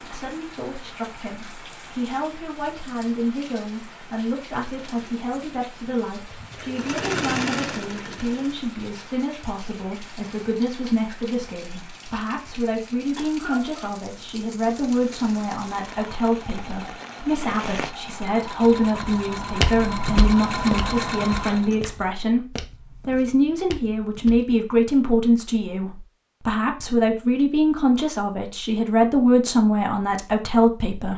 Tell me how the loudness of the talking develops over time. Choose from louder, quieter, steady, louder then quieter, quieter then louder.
louder.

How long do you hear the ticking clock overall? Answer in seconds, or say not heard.
not heard.